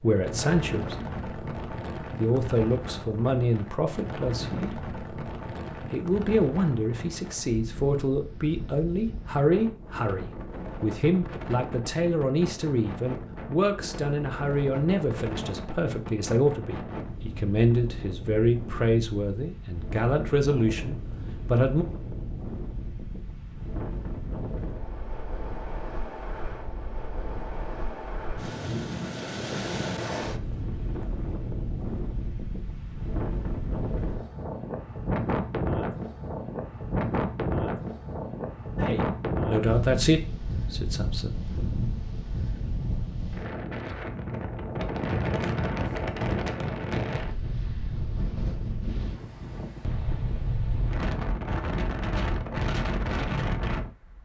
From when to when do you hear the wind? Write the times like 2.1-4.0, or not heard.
0.0-54.2.